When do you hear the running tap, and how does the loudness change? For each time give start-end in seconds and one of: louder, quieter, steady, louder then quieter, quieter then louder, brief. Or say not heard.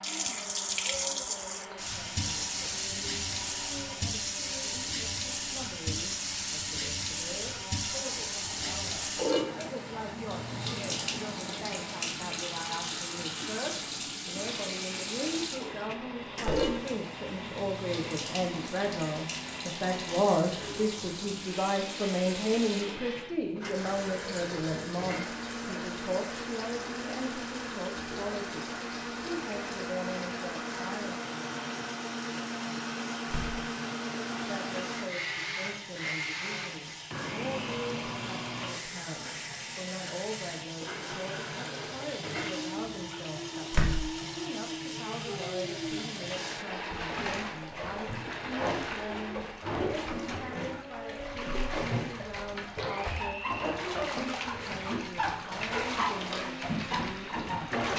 0.0-57.9 quieter then louder.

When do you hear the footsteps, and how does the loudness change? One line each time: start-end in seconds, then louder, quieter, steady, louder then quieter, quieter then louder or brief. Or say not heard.
not heard.